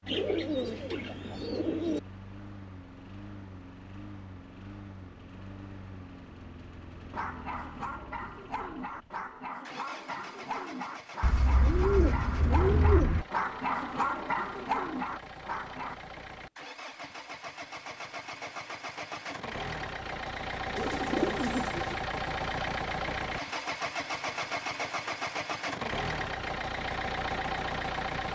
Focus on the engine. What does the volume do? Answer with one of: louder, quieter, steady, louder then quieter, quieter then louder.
louder.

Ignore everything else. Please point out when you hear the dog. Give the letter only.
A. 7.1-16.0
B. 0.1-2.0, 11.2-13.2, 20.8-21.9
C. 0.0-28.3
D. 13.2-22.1
A.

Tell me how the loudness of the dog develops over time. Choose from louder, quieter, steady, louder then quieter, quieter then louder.
louder.